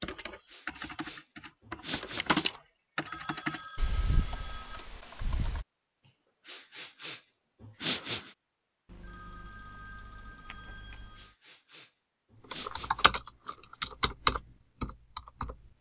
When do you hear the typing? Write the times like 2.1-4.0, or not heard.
0.0-5.7, 12.5-15.7.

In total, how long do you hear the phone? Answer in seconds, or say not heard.
4 s.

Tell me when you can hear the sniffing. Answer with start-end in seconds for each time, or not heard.
0.1-2.5, 6.5-8.3, 11.2-13.1.